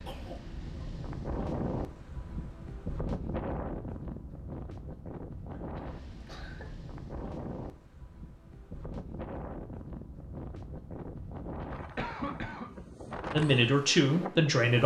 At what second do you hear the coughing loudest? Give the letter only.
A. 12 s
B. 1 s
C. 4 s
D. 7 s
A.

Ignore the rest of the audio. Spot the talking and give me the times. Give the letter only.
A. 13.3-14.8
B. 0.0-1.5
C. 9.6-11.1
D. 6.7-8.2
A.